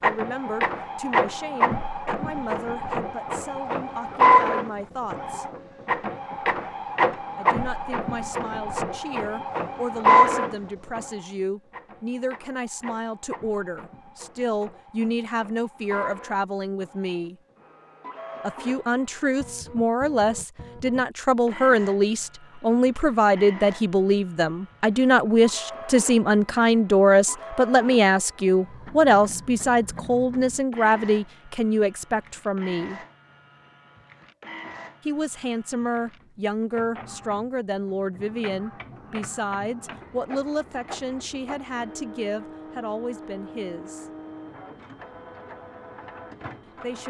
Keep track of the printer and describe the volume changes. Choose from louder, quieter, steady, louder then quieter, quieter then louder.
quieter.